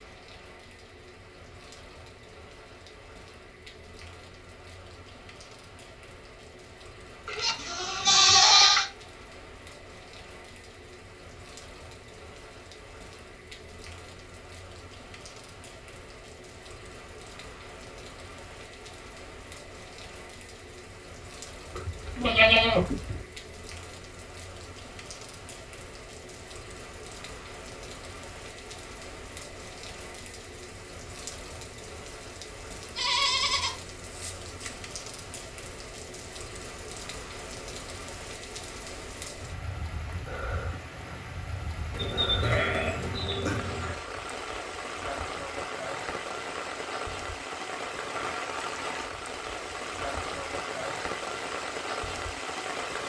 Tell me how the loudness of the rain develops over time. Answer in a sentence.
The loudness of the rain goes up.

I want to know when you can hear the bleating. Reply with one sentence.
You can hear the bleating from 7.2 to 8.8 s, from 21.8 to 23.2 s, from 33.0 to 34.8 s and from 41.9 to 44.0 s.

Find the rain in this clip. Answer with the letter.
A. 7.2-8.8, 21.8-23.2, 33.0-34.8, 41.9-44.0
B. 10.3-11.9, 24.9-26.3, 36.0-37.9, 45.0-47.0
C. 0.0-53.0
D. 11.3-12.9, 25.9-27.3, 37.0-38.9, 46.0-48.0
C.